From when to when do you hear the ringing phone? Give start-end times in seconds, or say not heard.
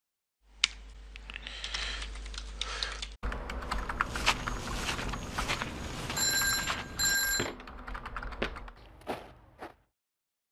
6.2-7.5.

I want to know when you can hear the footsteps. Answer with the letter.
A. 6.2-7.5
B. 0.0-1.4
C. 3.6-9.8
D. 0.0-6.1
C.